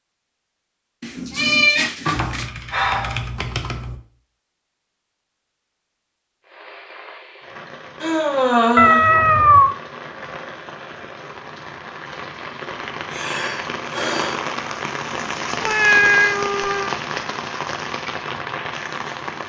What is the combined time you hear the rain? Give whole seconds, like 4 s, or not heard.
13 s.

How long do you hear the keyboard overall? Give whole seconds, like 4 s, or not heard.
2 s.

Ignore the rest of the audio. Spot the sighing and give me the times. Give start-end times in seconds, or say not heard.
2.0-3.2, 8.0-9.1, 13.1-14.3.